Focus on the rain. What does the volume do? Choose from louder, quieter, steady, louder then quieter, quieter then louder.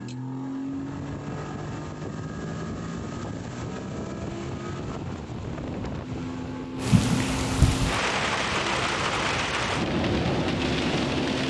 louder.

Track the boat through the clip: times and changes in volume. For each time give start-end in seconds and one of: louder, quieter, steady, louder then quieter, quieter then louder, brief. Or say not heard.
0.0-11.4 steady.